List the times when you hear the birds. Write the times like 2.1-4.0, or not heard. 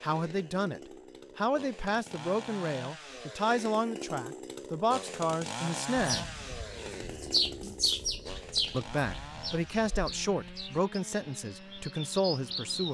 6.0-12.8.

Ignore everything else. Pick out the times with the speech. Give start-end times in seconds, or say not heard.
0.0-6.3, 8.7-12.8.